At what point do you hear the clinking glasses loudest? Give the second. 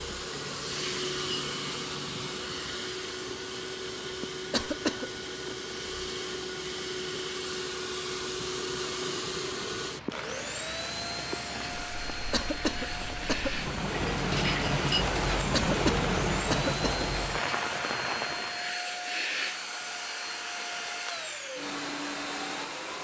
15 s.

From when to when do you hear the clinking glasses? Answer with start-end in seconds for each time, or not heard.
0.3-2.4, 13.9-15.1.